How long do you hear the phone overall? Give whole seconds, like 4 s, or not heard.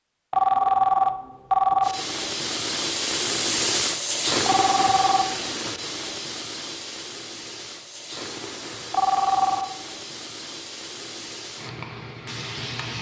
3 s.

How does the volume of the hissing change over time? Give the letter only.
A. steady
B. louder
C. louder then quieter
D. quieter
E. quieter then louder
D.